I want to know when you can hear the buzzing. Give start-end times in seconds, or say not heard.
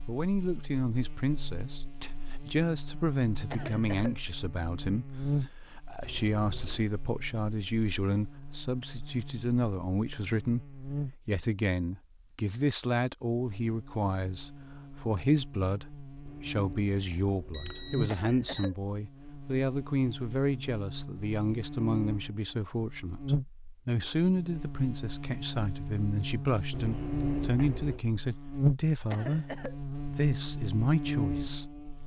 0.0-32.0.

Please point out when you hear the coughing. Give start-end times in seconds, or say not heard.
3.5-4.2, 18.1-18.8, 29.1-29.8.